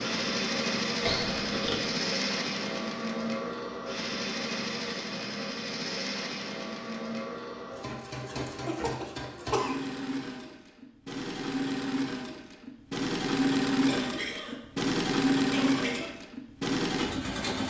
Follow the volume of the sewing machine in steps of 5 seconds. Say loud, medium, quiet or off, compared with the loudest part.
loud, medium, loud, loud.